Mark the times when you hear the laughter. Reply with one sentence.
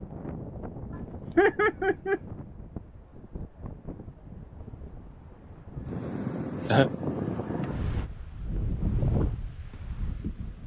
The laughter can be heard from 1.4 to 2.2 s and from 6.2 to 6.9 s.